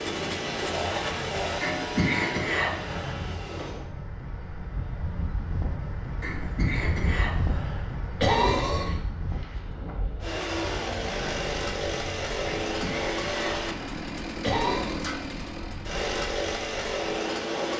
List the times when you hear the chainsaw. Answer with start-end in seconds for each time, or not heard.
0.0-3.8, 10.2-17.7.